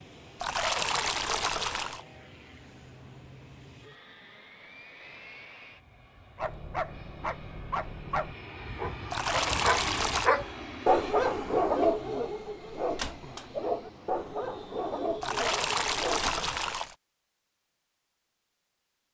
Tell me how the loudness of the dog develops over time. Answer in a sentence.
The volume of the dog goes up, then down.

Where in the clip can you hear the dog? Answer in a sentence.
You can hear the dog from 6.3 to 16.6 s.